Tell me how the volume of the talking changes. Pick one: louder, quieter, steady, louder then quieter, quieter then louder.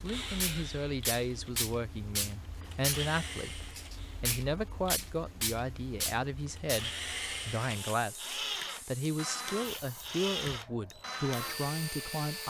steady.